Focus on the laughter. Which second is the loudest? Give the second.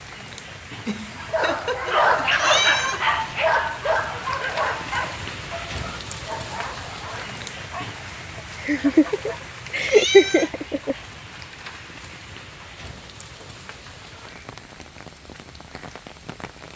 10 s.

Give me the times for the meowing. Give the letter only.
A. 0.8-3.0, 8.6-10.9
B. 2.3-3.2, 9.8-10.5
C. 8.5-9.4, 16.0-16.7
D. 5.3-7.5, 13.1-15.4
B.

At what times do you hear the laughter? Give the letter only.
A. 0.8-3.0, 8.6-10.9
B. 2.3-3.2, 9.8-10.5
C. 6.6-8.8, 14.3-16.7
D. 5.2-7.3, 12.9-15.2
A.